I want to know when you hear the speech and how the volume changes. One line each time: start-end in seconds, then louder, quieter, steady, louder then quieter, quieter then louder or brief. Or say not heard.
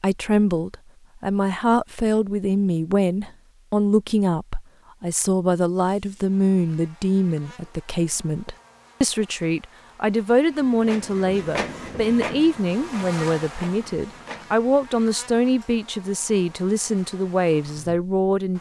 0.0-18.5 steady.